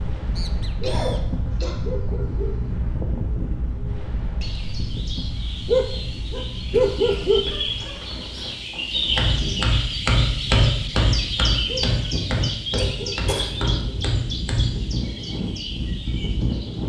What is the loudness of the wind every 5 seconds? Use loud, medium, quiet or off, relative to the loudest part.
loud, medium, medium, loud.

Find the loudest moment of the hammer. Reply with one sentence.
The volume of the hammer peaks at 11 seconds.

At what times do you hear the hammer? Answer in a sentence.
The hammer can be heard from 9.0 to 14.8 s.